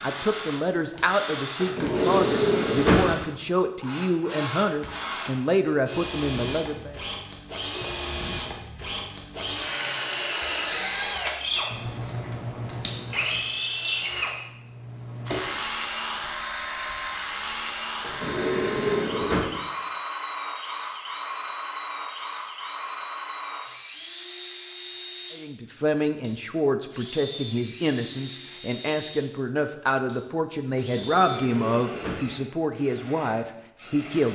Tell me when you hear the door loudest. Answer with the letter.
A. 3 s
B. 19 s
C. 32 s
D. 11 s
A.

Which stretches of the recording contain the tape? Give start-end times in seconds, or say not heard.
not heard.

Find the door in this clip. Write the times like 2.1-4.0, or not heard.
1.6-3.1, 18.0-19.5, 30.8-32.3.